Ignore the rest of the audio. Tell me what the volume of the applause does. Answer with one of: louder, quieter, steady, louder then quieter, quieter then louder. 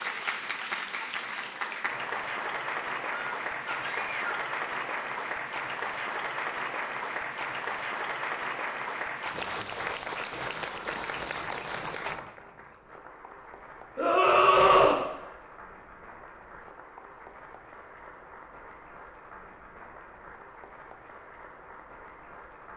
quieter.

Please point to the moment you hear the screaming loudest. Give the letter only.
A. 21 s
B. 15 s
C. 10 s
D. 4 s
B.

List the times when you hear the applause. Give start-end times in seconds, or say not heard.
0.0-22.7.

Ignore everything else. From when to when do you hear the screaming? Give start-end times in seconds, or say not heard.
3.1-4.5, 13.9-15.0.